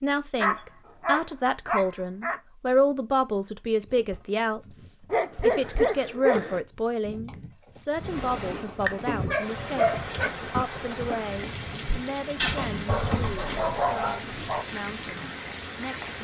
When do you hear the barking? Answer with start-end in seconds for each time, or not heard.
0.4-2.4, 5.1-6.6, 8.4-10.3, 12.8-14.7.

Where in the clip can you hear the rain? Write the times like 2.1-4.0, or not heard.
7.9-16.1.